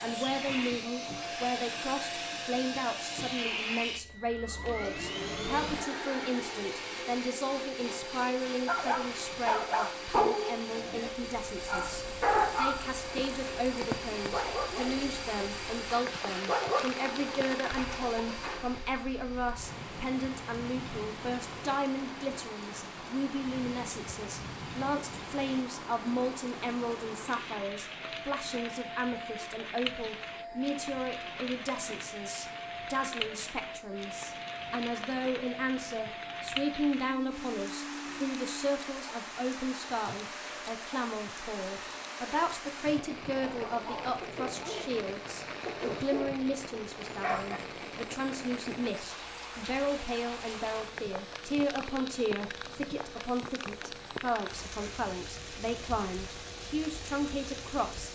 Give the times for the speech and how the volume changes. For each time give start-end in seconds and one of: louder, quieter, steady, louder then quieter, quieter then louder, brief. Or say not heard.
0.0-58.1 steady.